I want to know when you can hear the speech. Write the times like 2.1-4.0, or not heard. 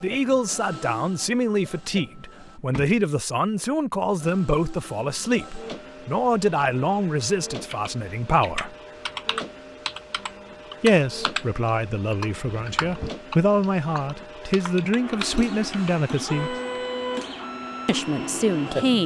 0.0-8.8, 10.8-16.6, 17.9-19.0.